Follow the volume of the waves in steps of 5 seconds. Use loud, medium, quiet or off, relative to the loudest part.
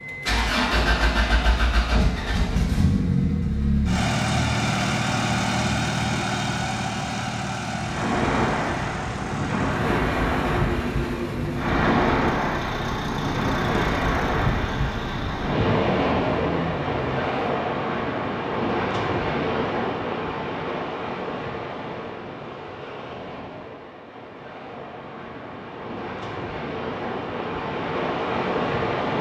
off, loud, loud, loud, medium, loud.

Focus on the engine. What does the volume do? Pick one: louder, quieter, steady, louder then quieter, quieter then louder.
quieter.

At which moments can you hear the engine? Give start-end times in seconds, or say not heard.
0.0-17.4.